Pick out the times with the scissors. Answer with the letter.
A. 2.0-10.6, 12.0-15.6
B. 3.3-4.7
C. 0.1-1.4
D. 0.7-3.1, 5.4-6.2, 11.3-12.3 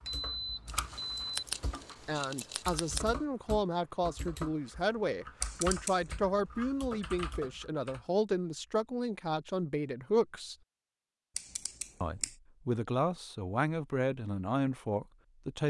D.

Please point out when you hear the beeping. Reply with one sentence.
The beeping can be heard from 0.1 to 1.4 s.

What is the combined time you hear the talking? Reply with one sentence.
The talking can be heard for 12 seconds in total.